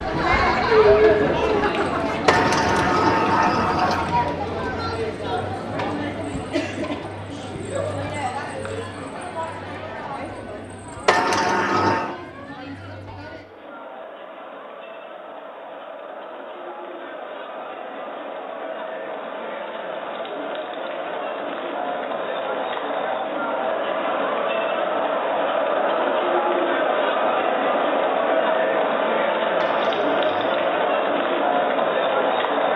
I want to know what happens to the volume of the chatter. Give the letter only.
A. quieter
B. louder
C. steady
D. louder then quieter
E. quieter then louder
E.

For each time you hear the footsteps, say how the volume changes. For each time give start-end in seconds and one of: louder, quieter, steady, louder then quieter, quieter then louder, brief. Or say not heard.
not heard.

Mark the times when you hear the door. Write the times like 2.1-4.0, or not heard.
2.2-4.2, 11.1-12.2, 29.6-30.8.